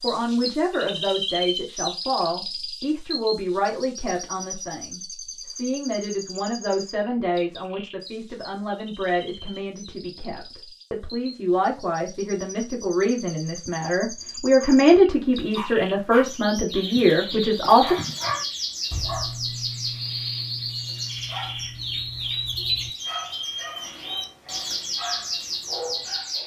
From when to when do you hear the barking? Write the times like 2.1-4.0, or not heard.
14.6-26.4.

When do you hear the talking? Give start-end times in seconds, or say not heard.
0.0-17.9.